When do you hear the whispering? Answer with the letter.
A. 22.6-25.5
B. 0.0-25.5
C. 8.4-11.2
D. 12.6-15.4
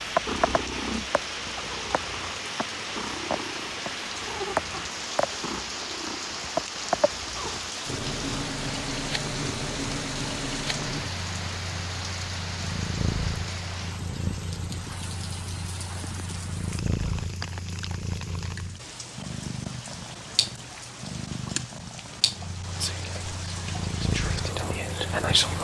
A.